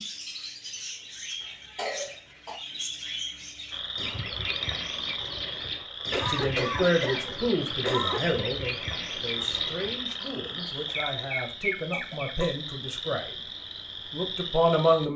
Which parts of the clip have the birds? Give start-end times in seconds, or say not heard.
0.0-12.3.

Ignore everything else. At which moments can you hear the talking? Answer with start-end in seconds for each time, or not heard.
6.2-13.3, 14.1-15.1.